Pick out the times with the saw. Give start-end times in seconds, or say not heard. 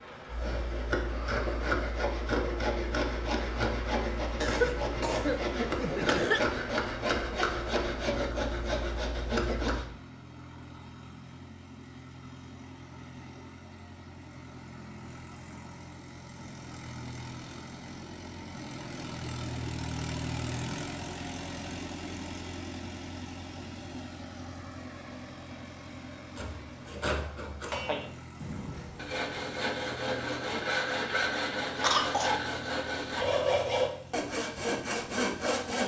0.3-9.8, 26.4-35.8.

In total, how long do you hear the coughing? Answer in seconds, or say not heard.
3 s.